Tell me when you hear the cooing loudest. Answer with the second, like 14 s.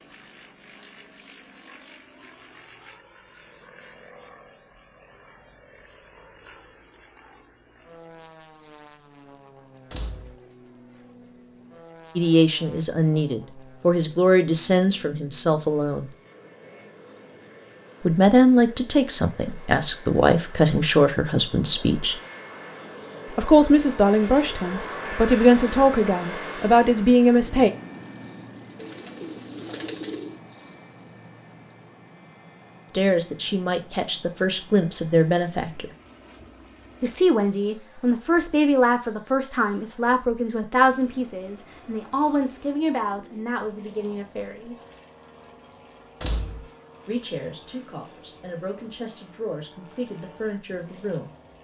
30 s.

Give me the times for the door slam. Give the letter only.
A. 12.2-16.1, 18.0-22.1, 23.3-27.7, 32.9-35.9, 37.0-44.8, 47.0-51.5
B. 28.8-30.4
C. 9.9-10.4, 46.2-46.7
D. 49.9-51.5
C.